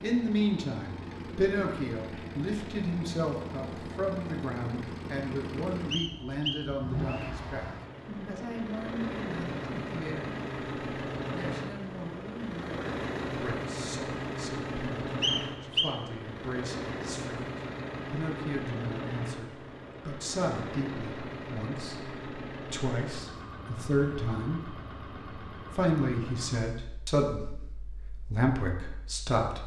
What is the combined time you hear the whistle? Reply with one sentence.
The whistle can be heard for 2 seconds in total.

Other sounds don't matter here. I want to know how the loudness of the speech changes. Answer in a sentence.
The volume of the speech goes down, then up.